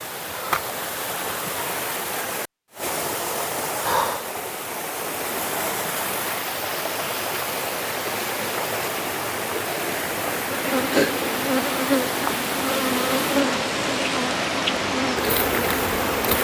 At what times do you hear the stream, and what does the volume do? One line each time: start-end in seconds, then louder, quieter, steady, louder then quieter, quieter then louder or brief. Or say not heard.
0.0-16.3 steady.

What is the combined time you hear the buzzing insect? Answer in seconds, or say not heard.
6 s.